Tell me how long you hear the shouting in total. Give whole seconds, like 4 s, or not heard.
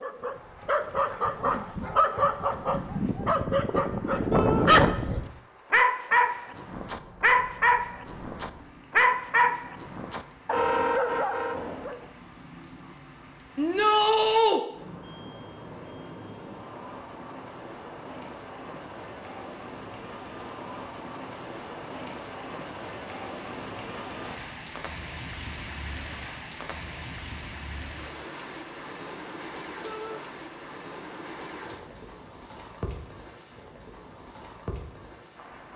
2 s.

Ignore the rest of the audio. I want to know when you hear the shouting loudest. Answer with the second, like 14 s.
14 s.